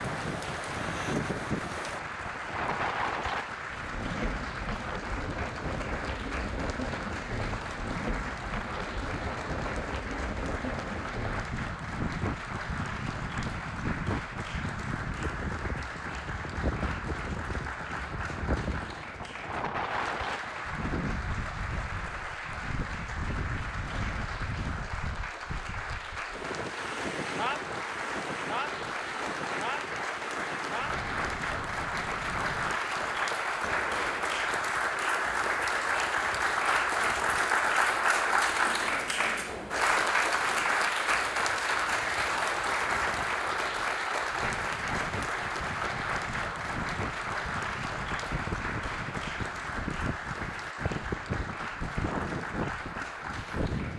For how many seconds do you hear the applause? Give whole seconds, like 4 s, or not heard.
54 s.